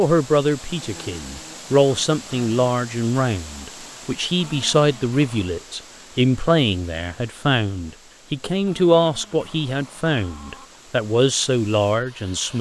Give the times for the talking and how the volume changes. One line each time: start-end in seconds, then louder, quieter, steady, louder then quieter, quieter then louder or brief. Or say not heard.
0.0-12.5 steady.